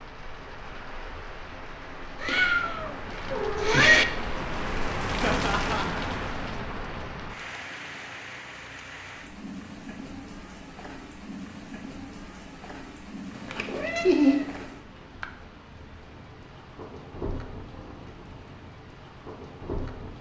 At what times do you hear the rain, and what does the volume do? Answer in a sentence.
You can hear the rain from 0.0 to 20.1 s, getting louder then quieter.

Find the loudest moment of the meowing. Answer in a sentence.
The volume of the meowing peaks at 4 seconds.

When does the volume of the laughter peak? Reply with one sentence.
The volume of the laughter peaks at 14 seconds.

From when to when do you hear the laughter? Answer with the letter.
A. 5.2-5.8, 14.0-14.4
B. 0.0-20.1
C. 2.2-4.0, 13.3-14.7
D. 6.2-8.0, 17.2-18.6
A.